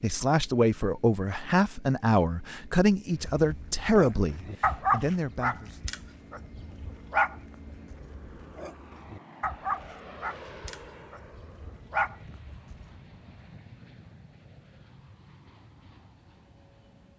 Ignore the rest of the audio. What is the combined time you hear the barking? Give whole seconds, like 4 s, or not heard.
10 s.